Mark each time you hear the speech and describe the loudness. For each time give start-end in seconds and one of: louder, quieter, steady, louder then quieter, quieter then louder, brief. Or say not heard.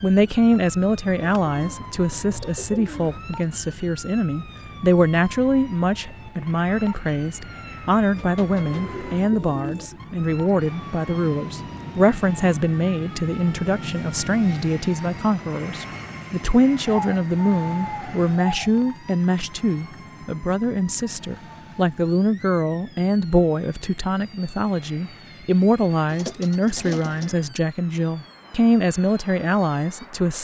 0.0-30.3 steady.